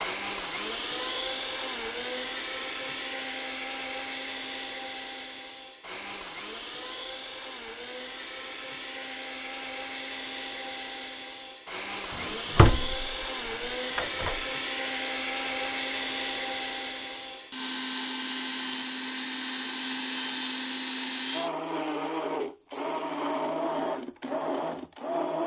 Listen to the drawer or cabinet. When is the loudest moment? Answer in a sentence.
The volume of the drawer or cabinet peaks at 13 seconds.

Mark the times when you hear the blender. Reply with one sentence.
The blender can be heard from 0.0 to 25.4 s.